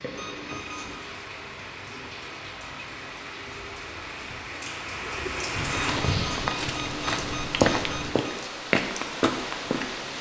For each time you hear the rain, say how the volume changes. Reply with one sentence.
The rain can be heard from 0.0 to 10.1 s, getting louder.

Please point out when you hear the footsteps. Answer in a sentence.
You can hear the footsteps from 5.5 to 8.1 s.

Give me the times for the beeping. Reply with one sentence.
The beeping can be heard from 0.1 to 1.0 s and from 5.9 to 8.4 s.